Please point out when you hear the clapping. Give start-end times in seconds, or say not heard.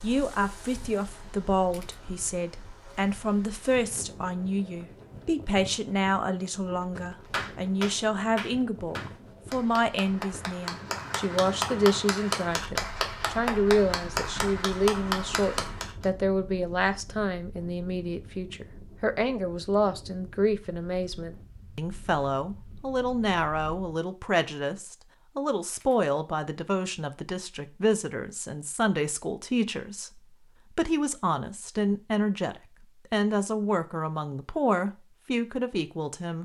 7.3-16.1.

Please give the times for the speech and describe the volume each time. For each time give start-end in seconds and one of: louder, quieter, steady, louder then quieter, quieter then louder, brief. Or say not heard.
0.0-36.3 steady.